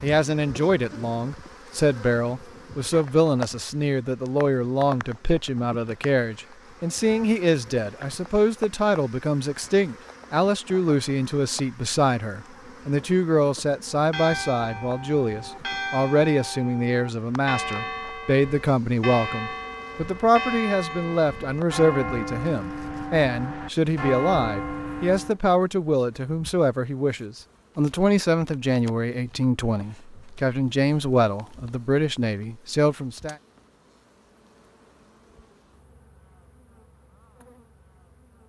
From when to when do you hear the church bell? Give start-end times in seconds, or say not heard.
13.9-25.4.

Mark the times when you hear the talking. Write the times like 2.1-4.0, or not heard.
0.0-33.4.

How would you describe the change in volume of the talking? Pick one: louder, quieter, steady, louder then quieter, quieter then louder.
steady.